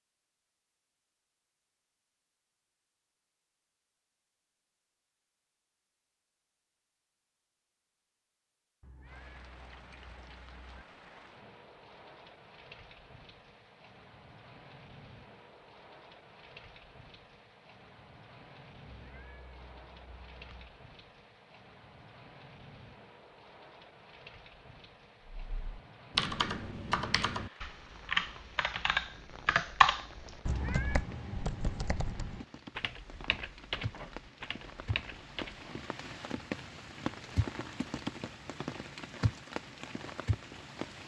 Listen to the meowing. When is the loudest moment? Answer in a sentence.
The volume of the meowing peaks at 31 seconds.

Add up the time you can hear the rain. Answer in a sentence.
The rain can be heard for 32 seconds in total.